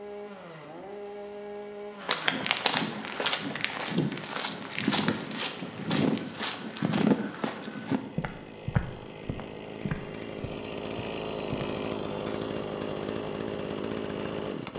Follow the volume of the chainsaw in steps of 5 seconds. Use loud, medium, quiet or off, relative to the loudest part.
medium, medium, loud.